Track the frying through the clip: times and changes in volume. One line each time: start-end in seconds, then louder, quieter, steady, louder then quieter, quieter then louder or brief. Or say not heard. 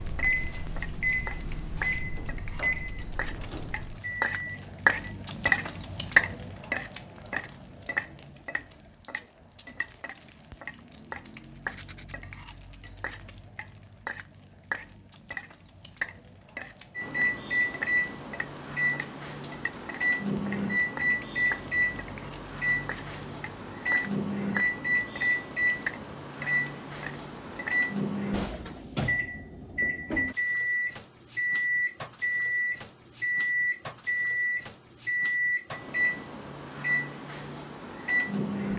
0.0-27.9 quieter.